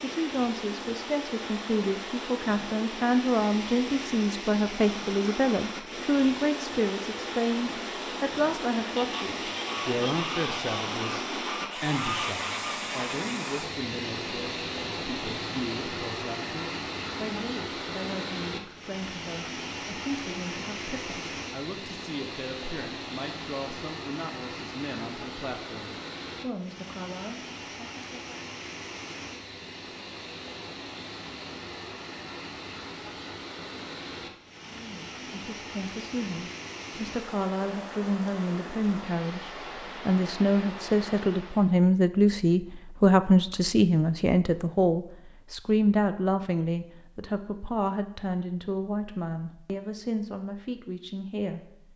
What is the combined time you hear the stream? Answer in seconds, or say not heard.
42 s.